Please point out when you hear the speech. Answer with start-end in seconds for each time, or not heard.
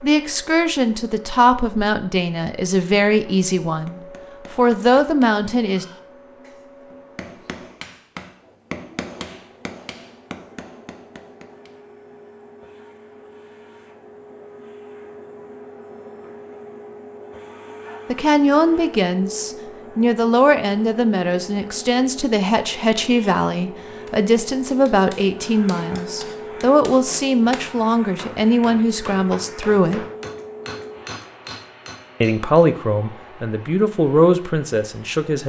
0.0-5.8, 18.1-30.1, 32.2-35.4.